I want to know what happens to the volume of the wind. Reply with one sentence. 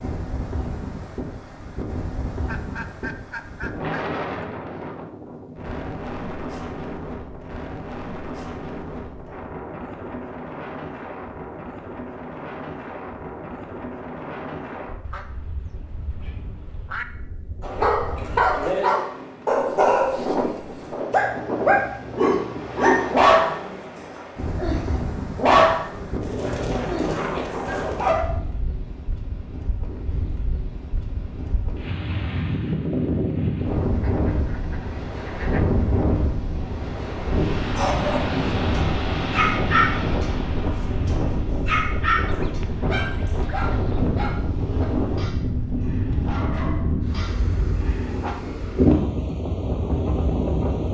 The volume of the wind goes up.